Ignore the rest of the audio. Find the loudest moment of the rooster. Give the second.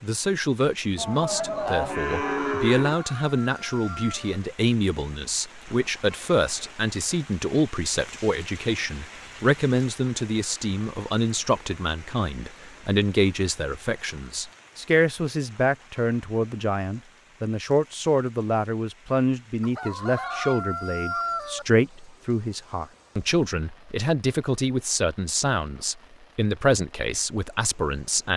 21 s.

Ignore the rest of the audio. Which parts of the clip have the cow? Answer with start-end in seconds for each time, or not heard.
0.9-3.0.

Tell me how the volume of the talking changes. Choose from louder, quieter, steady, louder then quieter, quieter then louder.
steady.